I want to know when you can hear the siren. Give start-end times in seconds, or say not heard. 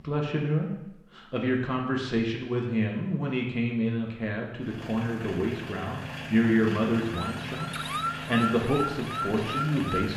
7.1-10.1.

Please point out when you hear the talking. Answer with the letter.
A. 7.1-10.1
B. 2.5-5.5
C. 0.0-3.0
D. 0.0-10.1
D.